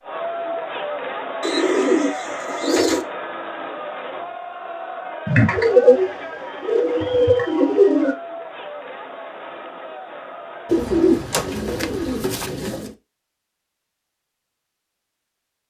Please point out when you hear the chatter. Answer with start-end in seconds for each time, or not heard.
0.0-11.2.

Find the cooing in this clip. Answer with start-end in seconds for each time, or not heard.
1.4-3.0, 5.2-8.2, 10.7-12.9.